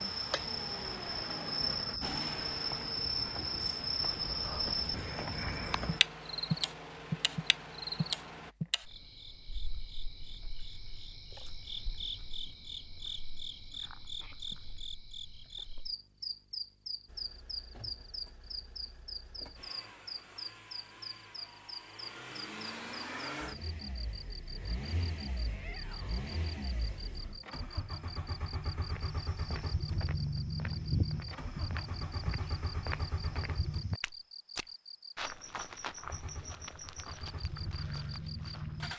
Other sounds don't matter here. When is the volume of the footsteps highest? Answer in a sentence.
The volume of the footsteps peaks at 31 seconds.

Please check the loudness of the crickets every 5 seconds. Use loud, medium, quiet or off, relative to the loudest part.
loud, loud, medium, medium, medium, quiet, quiet, quiet.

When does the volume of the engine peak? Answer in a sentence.
The volume of the engine peaks at 31 seconds.